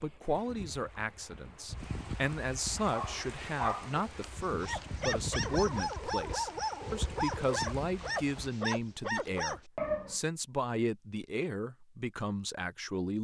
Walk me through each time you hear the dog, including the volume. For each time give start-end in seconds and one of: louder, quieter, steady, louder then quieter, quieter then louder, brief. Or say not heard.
2.9-10.2 steady.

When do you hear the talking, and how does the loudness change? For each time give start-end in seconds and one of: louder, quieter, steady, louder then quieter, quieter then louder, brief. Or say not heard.
0.0-13.1 steady.